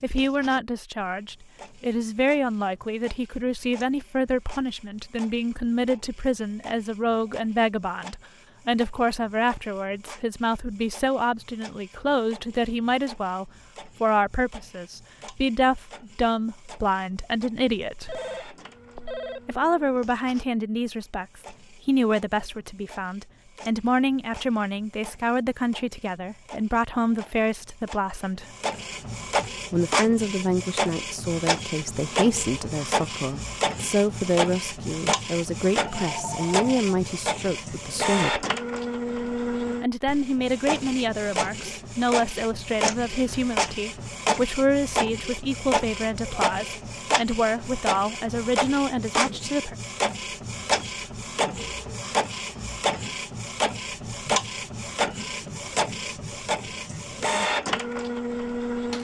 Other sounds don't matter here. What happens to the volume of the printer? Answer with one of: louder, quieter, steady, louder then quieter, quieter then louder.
louder.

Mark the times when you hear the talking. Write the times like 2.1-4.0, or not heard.
0.0-18.1, 19.4-28.6, 29.7-38.5, 39.8-49.8.